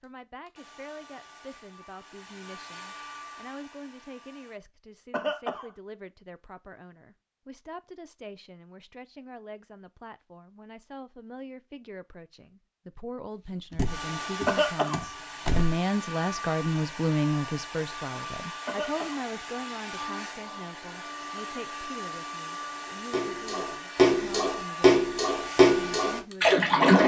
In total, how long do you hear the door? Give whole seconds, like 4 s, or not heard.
2 s.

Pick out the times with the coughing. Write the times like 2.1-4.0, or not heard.
5.1-5.7, 14.4-15.1, 18.6-19.2.